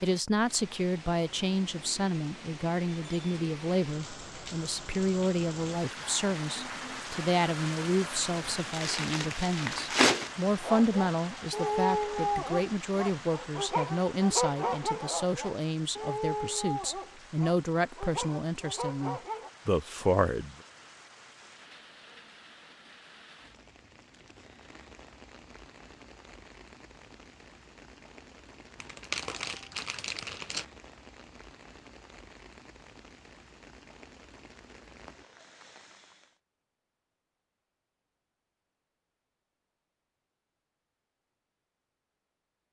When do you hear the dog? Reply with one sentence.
The dog can be heard from 10.6 to 19.5 s.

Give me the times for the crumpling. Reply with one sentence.
You can hear the crumpling from 8.7 to 10.3 s and from 28.8 to 30.6 s.